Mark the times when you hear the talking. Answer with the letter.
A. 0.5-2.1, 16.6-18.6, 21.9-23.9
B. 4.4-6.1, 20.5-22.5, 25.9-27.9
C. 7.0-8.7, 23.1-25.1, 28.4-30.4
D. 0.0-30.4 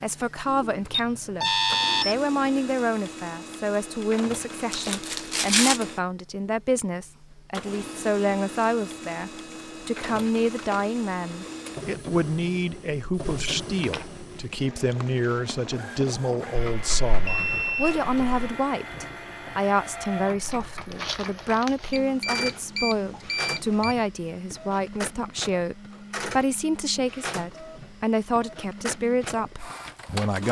D.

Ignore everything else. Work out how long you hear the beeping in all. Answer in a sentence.
The beeping can be heard for 6 seconds in total.